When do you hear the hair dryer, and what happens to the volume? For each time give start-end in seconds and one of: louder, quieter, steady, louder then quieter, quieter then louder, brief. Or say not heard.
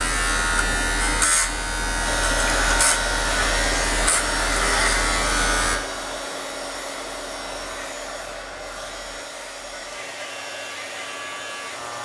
1.9-12.0 quieter.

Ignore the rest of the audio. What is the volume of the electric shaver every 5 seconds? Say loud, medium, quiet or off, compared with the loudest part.
loud, medium, quiet.